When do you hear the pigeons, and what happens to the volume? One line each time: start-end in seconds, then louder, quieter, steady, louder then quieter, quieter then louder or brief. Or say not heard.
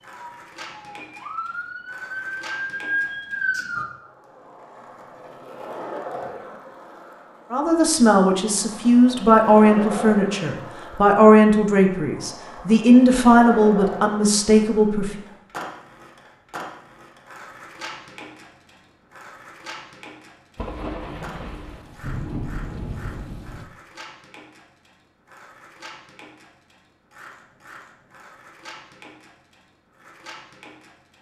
not heard.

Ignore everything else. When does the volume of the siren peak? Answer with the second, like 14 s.
3 s.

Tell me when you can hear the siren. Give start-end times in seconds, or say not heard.
0.1-3.9.